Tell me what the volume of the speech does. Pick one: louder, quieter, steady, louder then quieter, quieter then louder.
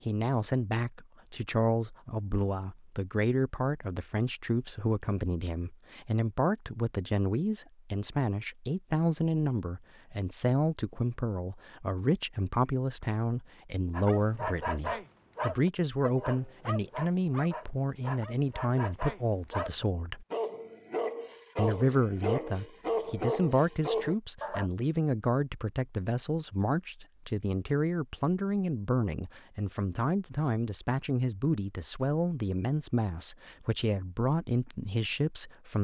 steady.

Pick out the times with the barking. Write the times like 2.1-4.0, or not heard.
13.9-24.7.